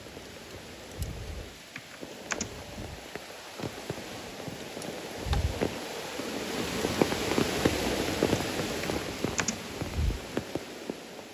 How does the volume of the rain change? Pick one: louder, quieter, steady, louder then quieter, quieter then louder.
louder then quieter.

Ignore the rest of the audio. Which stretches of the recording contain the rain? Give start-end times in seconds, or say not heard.
0.0-11.2.